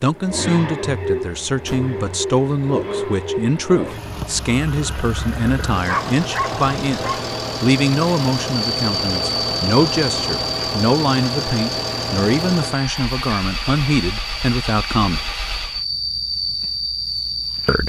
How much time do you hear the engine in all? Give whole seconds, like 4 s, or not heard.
16 s.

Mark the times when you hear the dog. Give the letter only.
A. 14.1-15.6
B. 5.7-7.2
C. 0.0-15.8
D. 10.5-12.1
B.